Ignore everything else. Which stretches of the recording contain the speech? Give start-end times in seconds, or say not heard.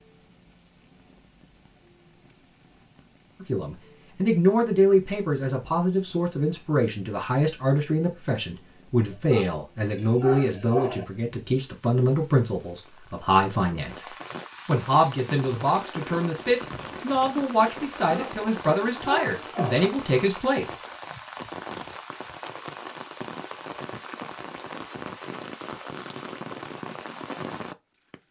3.4-20.8.